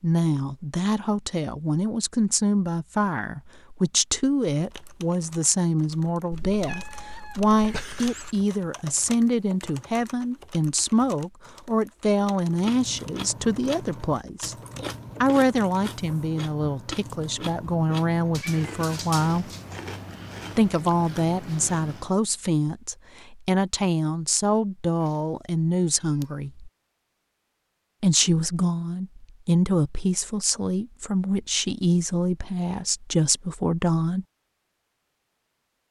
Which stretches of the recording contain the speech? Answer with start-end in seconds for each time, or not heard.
0.0-14.6, 15.2-19.5, 20.6-26.7, 28.0-34.2.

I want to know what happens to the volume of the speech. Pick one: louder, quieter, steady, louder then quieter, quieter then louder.
steady.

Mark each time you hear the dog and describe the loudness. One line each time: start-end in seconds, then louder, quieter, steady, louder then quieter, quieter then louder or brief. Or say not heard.
not heard.